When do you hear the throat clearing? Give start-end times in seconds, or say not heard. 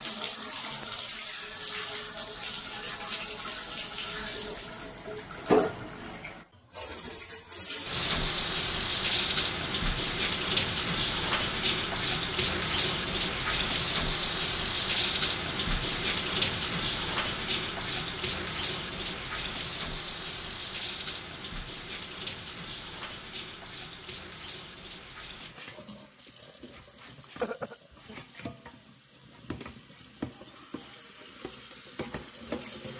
27.2-28.1.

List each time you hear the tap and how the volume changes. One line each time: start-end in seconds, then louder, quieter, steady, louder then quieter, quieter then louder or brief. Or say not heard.
0.0-32.9 quieter.